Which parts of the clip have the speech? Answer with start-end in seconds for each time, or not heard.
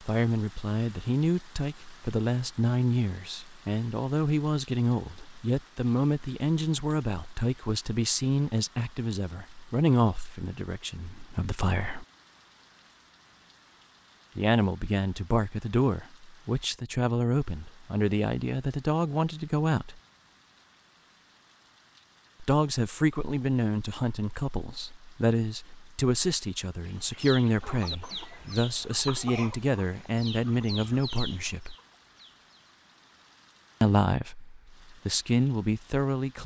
0.0-12.1, 14.3-20.0, 22.4-31.8, 33.8-36.4.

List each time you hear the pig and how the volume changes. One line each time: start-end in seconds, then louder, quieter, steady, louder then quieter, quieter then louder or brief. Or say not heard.
not heard.